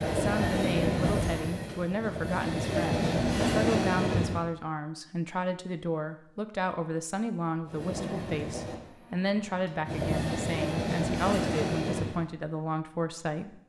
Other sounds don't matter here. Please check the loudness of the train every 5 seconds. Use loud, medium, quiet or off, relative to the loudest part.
loud, medium, loud.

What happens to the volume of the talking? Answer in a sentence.
The volume of the talking stays about the same.